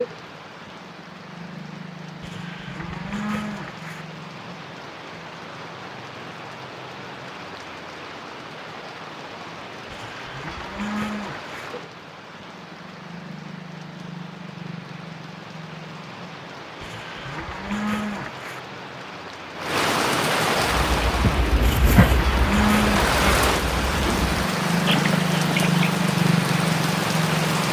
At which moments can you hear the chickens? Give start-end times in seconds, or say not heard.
20.8-25.9.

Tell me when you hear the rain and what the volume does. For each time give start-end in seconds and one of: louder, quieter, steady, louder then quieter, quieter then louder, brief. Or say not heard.
0.0-27.6 louder.